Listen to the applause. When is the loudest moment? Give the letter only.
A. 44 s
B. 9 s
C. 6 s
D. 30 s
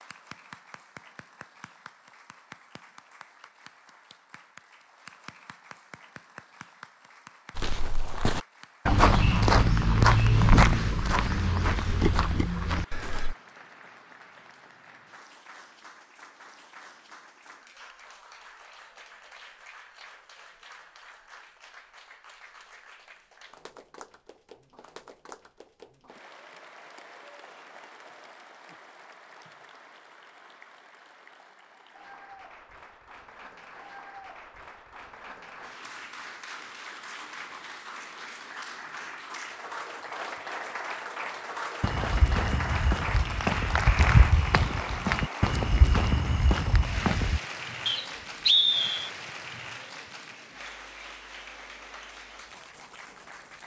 A.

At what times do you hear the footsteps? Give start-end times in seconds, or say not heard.
7.5-13.3, 41.8-47.4.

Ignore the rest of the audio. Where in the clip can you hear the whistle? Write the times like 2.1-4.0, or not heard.
47.9-49.1.